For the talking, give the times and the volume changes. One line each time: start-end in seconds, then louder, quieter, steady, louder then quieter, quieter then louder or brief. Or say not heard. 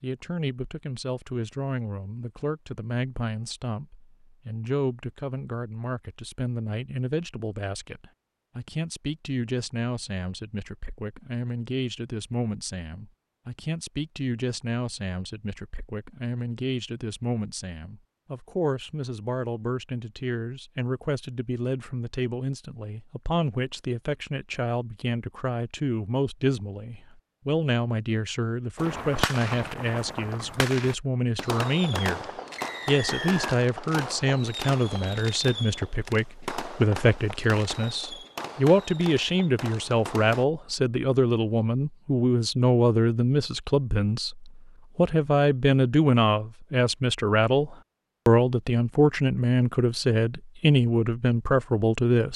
0.0-52.3 louder.